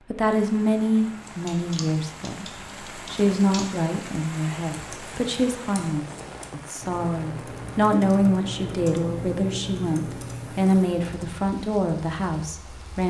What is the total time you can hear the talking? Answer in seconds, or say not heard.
13 s.